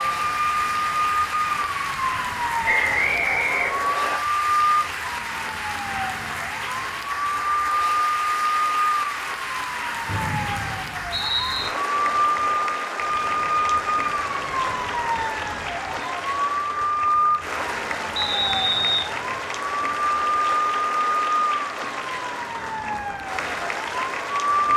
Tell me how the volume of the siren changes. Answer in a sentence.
The loudness of the siren stays about the same.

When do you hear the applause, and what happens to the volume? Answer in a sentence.
You can hear the applause from 0.0 to 24.7 s, at a steady volume.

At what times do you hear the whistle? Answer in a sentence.
You can hear the whistle from 2.6 to 4.2 s, from 10.1 to 11.7 s and from 18.1 to 19.1 s.